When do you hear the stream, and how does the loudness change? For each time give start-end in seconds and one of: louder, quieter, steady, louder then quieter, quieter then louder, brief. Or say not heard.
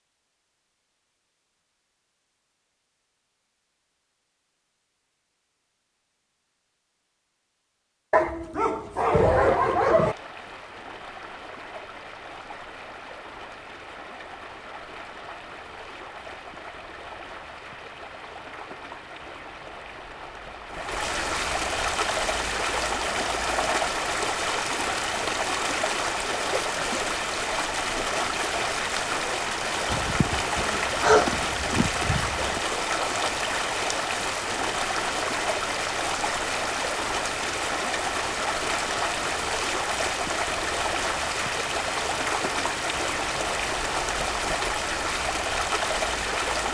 9.1-46.6 louder.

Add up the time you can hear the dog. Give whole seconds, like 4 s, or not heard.
5 s.